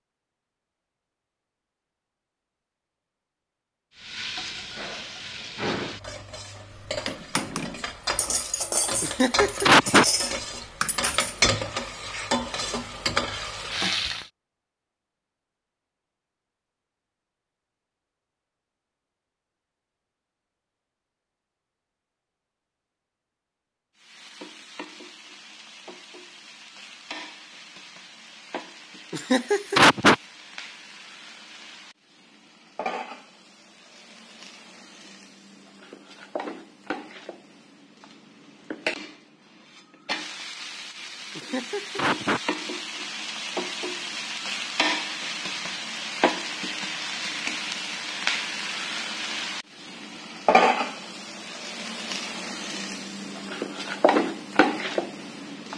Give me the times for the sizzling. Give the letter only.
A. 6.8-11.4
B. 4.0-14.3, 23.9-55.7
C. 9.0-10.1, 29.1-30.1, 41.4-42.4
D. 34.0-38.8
B.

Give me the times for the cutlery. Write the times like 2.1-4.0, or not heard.
6.8-11.4.